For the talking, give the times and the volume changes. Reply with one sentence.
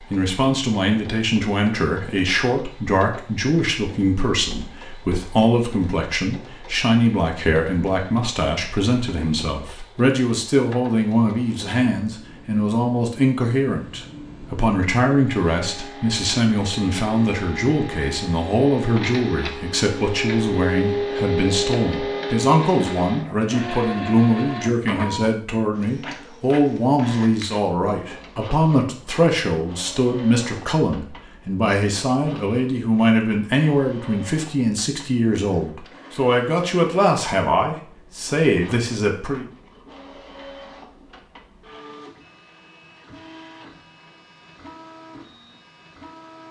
The talking can be heard from 0.0 to 39.5 s, at a steady volume.